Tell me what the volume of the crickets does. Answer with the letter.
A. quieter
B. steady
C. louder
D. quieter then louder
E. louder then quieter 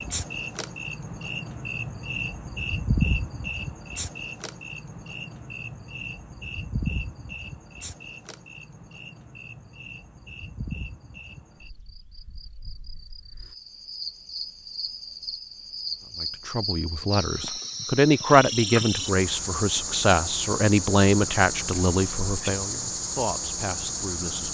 D.